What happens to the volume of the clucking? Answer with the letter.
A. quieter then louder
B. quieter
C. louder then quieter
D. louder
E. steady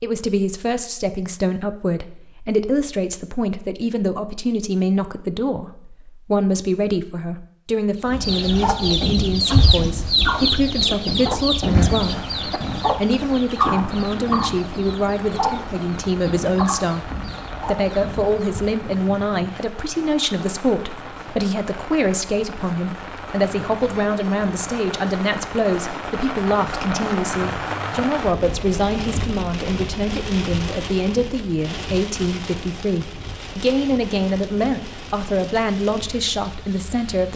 B.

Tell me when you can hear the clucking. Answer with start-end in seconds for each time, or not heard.
8.1-18.8.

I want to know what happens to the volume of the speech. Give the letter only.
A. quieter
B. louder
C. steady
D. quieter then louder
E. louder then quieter
C.